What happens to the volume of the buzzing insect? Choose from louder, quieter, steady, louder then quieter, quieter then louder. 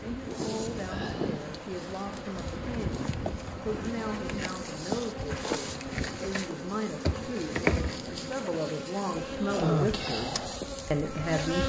louder.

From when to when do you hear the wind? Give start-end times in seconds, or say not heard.
0.0-8.7.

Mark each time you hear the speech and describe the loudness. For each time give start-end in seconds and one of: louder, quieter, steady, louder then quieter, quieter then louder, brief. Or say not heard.
0.0-11.6 louder.